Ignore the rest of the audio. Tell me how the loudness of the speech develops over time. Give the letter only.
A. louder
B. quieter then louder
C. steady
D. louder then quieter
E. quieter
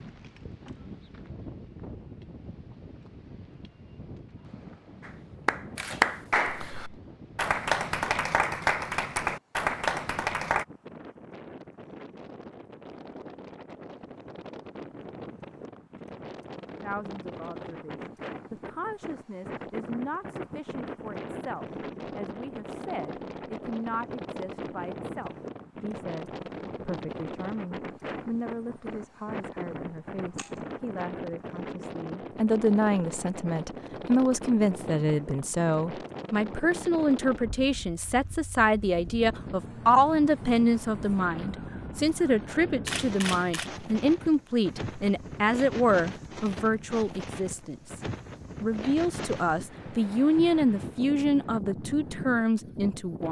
A.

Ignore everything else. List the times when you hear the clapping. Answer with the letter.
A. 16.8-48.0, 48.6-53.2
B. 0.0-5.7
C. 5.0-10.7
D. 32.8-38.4
C.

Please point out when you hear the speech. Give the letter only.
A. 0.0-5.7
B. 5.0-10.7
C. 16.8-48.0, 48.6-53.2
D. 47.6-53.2
C.